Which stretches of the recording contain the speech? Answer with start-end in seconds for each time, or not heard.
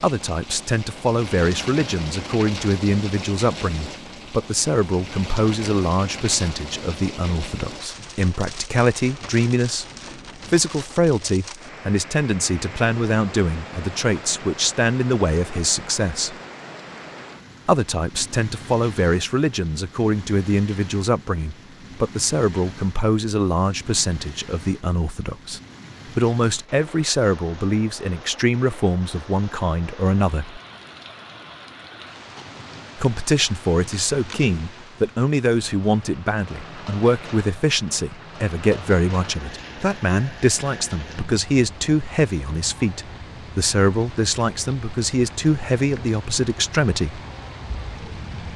0.0-9.8, 10.5-16.4, 17.6-30.6, 33.0-47.2.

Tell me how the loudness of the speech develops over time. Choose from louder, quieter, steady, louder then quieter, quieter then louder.
steady.